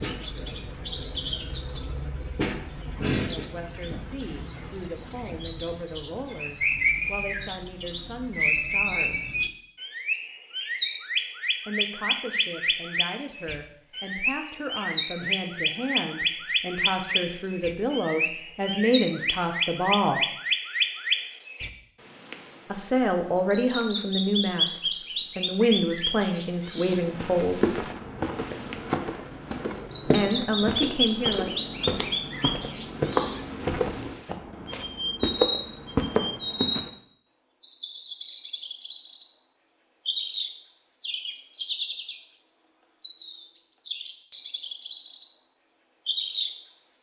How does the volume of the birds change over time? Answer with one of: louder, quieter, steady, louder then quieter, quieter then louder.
steady.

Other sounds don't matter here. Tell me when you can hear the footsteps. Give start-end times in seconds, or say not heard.
26.9-36.9.